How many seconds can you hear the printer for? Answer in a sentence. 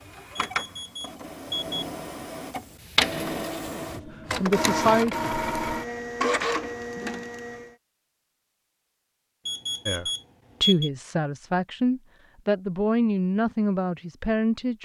You can hear the printer for 8 seconds altogether.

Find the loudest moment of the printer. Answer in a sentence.
The loudest moment of the printer is at 5 seconds.